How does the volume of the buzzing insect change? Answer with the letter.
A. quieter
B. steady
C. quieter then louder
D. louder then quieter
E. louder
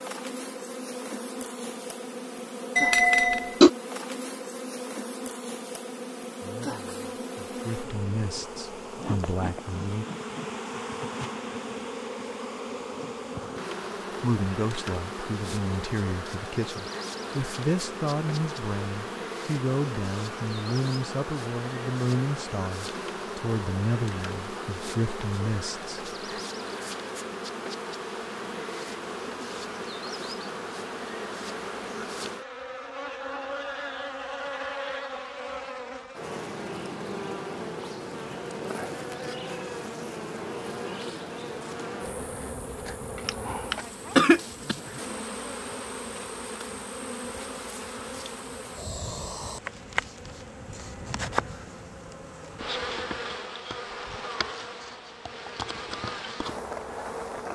B.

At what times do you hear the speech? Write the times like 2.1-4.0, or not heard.
6.4-10.1, 14.2-26.1.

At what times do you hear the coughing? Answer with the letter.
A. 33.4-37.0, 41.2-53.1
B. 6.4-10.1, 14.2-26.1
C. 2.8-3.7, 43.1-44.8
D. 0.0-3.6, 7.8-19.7
C.